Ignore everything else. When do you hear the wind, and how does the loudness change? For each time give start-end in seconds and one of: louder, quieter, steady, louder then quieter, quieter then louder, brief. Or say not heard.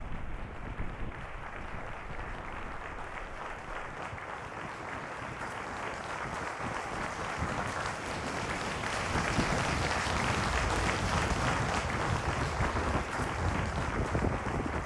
0.0-14.8 louder.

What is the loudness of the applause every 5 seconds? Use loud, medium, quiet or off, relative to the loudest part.
medium, loud, loud.